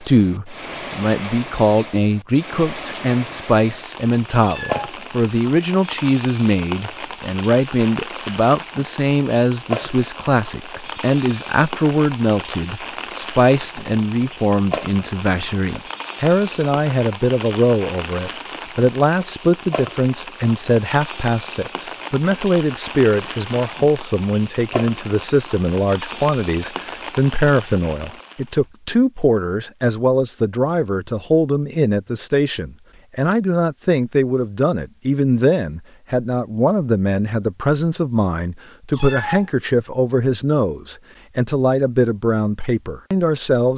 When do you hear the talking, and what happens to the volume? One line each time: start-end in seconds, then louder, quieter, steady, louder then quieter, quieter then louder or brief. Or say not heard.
0.0-43.7 steady.